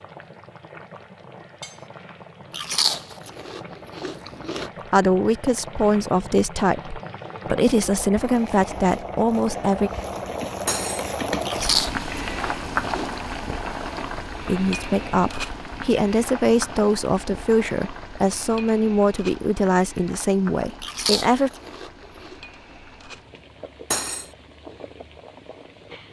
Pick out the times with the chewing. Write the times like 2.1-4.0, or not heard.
2.5-4.7, 11.4-13.2, 20.8-22.4.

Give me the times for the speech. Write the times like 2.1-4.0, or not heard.
4.9-9.9, 14.4-21.5.